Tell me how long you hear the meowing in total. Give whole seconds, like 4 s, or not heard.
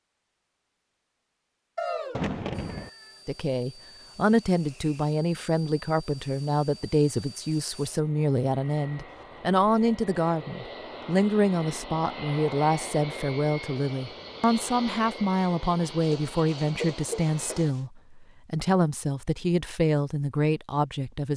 3 s.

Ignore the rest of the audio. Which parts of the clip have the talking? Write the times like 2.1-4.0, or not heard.
3.2-21.3.